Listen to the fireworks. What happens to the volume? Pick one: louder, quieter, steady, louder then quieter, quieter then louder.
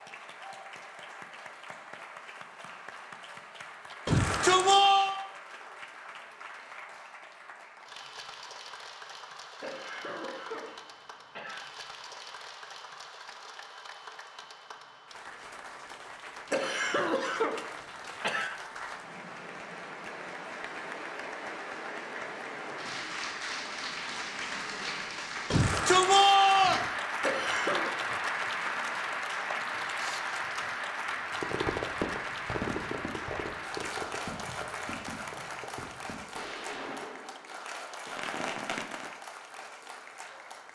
quieter then louder.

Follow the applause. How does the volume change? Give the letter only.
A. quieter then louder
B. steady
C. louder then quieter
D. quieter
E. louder
C.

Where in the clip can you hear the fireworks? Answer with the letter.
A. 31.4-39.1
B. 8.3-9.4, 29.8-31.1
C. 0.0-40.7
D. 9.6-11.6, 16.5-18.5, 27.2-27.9
A.